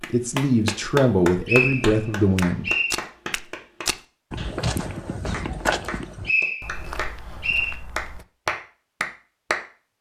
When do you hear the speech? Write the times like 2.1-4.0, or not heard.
0.1-2.7.